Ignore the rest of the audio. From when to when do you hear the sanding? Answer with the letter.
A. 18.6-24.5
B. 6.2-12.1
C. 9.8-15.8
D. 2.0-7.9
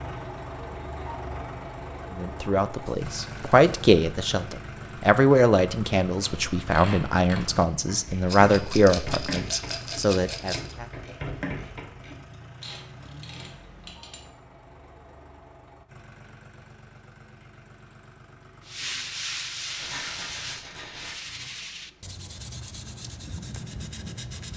A.